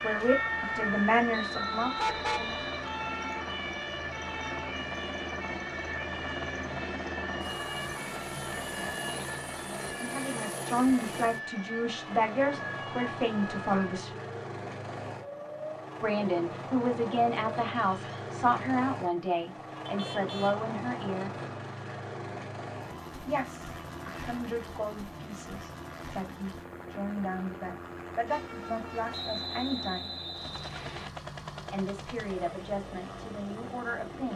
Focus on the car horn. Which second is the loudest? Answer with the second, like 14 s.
2 s.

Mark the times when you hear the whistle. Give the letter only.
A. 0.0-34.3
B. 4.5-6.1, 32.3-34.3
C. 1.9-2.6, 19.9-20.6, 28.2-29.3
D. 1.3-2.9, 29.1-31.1
D.